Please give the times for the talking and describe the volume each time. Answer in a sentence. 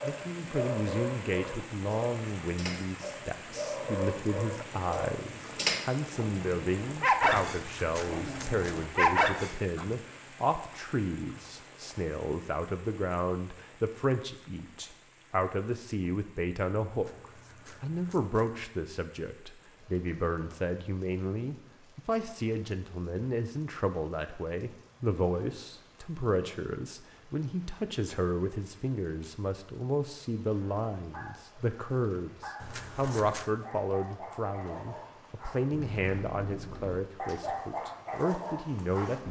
You can hear the talking from 0.0 to 39.2 s, at a steady volume.